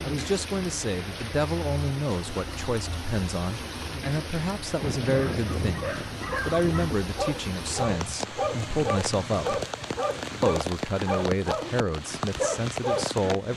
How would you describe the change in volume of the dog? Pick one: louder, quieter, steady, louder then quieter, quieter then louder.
steady.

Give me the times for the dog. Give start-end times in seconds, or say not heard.
4.8-13.2.